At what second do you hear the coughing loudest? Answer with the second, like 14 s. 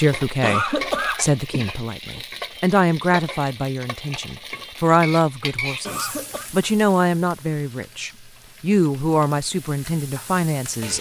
1 s.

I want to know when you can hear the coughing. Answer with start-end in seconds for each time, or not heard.
0.4-2.2, 5.8-6.5.